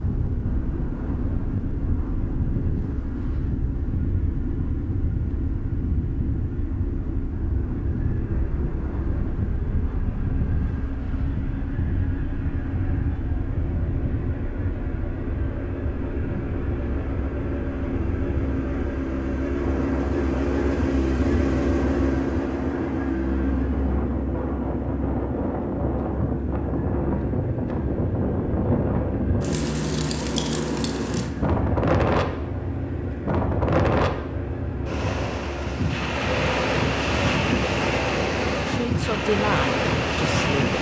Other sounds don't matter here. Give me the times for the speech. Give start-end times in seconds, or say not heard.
38.6-40.7.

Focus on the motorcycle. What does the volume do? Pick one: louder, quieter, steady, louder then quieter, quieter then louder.
louder then quieter.